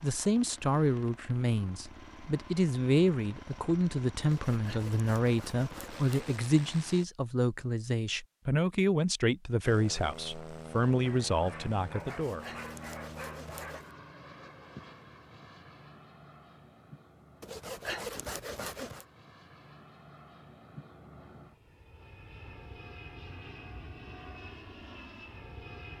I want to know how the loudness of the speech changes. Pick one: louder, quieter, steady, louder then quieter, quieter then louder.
steady.